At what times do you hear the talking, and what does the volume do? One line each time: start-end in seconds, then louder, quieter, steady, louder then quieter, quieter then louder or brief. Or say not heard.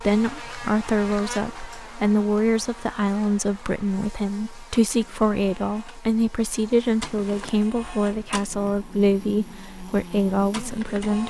0.0-11.2 steady.